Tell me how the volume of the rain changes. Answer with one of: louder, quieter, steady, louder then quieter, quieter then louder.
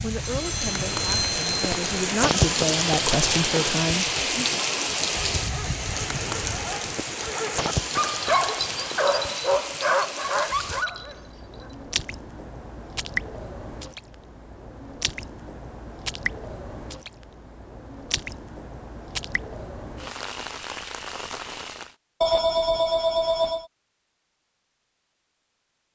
quieter.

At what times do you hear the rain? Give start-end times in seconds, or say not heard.
0.0-21.9.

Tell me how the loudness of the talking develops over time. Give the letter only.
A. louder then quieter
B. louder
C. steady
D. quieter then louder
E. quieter
B.